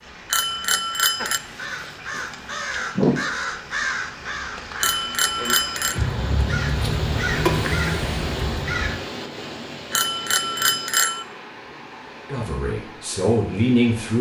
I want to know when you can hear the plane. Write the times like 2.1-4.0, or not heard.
not heard.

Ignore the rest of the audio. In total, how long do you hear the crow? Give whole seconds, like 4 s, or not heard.
8 s.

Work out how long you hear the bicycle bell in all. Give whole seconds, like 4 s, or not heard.
4 s.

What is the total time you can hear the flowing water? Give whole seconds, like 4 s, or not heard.
14 s.